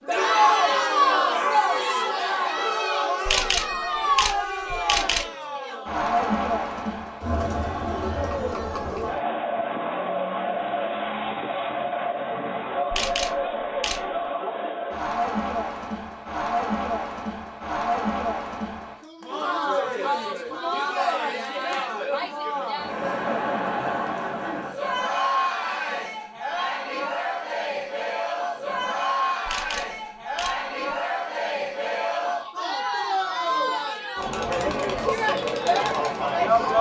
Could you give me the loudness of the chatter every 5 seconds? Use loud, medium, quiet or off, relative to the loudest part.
loud, medium, medium, medium, medium, medium, medium, loud.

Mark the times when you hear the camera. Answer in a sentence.
The camera can be heard from 3.2 to 5.2 s, from 12.9 to 14.2 s and from 29.4 to 30.9 s.